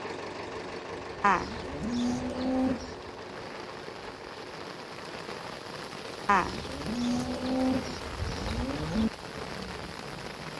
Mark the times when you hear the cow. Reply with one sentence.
You can hear the cow from 1.2 to 3.0 s and from 6.2 to 9.1 s.